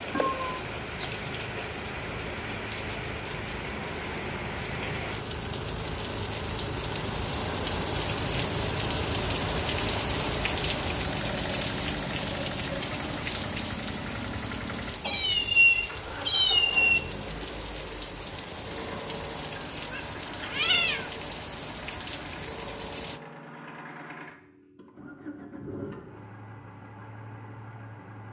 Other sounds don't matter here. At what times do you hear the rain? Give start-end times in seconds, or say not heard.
0.0-23.2.